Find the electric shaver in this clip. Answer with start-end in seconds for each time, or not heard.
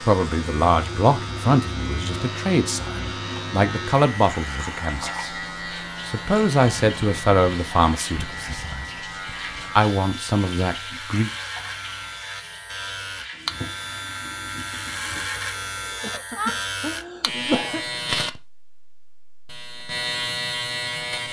0.0-21.2.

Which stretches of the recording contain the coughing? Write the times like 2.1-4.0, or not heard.
16.0-17.9.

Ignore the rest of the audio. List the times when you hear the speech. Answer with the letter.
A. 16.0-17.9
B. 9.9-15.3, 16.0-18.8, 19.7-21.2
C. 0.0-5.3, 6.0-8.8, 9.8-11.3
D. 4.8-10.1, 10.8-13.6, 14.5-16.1
C.